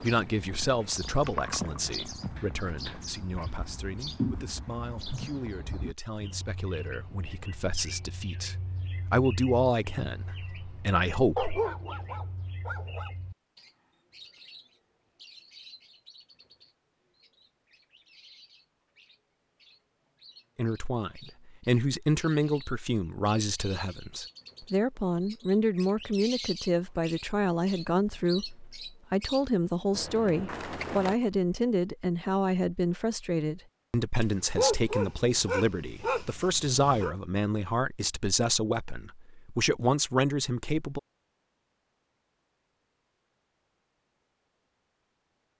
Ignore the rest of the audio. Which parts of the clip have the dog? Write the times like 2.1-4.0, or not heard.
11.3-13.1, 34.2-37.1.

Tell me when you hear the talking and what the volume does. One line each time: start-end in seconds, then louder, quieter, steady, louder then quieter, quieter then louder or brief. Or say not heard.
0.0-11.6 quieter then louder
20.6-41.0 steady.